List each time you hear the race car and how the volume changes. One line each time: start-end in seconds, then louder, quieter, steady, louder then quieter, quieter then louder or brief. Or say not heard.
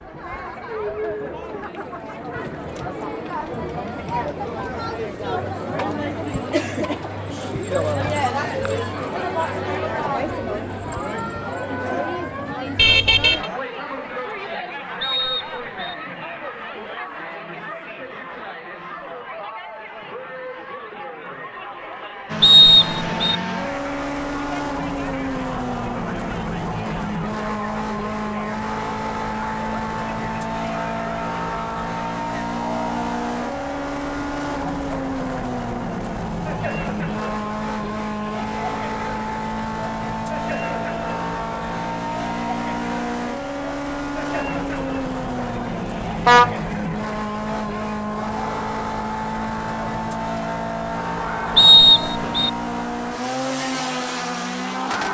22.2-55.0 steady.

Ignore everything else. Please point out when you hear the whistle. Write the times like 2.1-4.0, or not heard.
15.0-15.9, 22.4-23.4, 51.5-52.5.